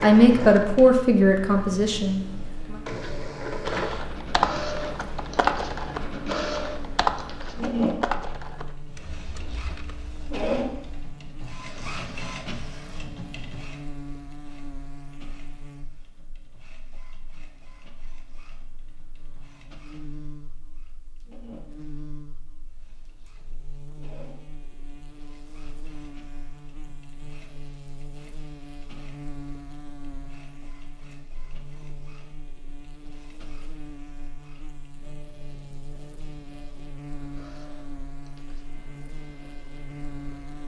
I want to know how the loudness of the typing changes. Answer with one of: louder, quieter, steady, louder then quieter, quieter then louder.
quieter.